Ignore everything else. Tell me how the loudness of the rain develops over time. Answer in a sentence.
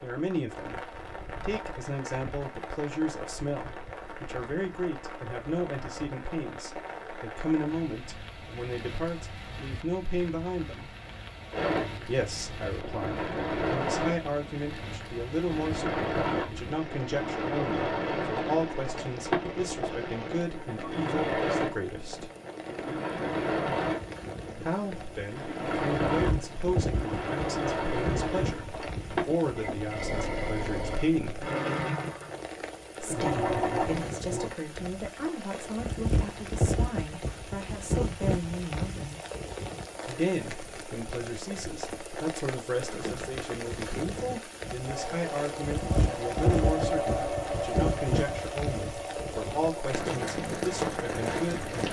The volume of the rain goes up.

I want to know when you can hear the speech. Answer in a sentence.
You can hear the speech from 0.0 to 10.9 s, from 12.1 to 22.3 s, from 24.6 to 31.4 s, from 33.0 to 39.2 s and from 40.0 to 51.8 s.